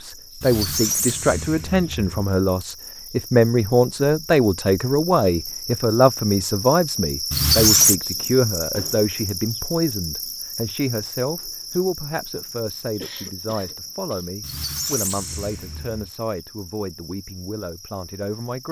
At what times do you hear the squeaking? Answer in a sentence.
You can hear the squeaking from 0.4 to 2.2 s, from 7.3 to 8.0 s and from 14.4 to 16.1 s.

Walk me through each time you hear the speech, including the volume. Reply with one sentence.
You can hear the speech from 0.0 to 18.6 s, getting quieter.